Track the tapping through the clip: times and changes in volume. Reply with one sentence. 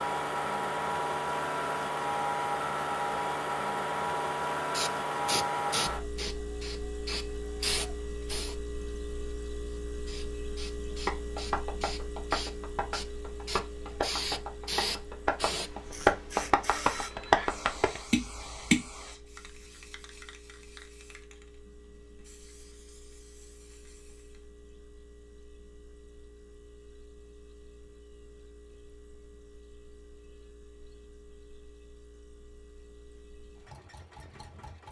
You can hear the tapping from 11.1 to 18.9 s, getting louder.